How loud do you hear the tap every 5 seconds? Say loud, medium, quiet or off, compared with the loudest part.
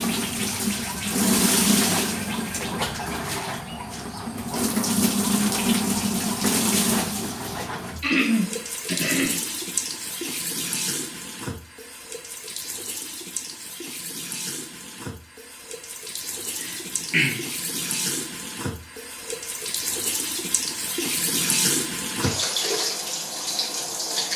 loud, loud, medium, medium, loud.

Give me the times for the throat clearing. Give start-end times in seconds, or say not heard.
8.0-9.4, 16.6-17.4.